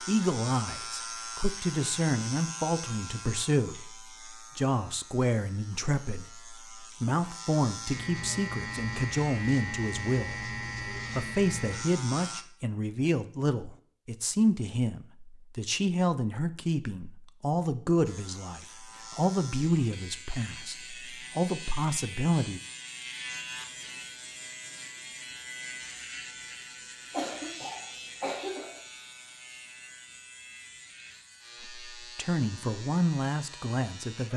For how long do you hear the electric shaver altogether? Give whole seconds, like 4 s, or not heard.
29 s.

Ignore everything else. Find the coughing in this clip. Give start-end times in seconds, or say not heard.
27.1-28.8.